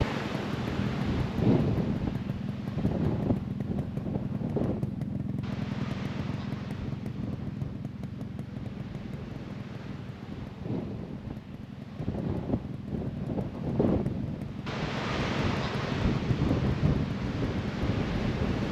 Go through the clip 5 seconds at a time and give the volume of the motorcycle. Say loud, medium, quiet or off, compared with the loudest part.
loud, loud, medium, loud.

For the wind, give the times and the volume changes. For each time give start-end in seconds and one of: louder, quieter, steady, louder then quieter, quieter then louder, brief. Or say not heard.
0.0-18.6 quieter then louder.